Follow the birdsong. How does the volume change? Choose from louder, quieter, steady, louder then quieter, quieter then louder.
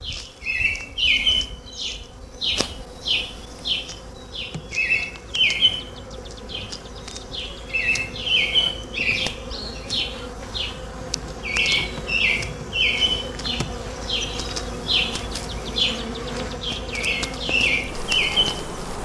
steady.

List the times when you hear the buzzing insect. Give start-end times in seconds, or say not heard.
0.0-19.0.